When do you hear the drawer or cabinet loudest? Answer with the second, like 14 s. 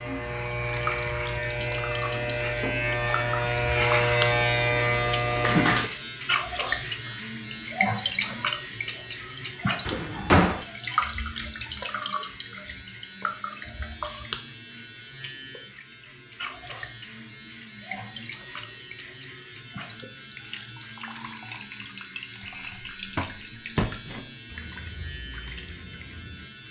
10 s.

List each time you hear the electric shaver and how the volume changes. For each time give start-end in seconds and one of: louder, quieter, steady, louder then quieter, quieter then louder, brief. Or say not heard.
0.0-26.6 quieter.